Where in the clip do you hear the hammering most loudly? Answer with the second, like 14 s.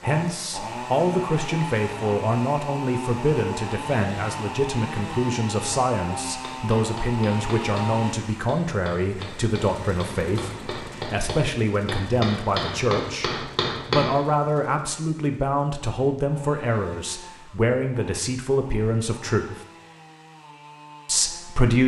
14 s.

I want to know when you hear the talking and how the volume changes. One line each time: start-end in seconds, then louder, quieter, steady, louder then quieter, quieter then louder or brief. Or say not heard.
0.0-19.6 steady
21.1-21.8 brief.